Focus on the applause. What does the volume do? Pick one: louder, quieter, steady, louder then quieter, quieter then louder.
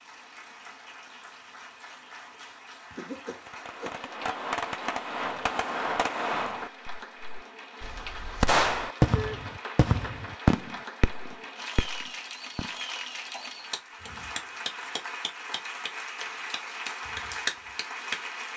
louder.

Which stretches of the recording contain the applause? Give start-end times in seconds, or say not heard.
0.0-18.5.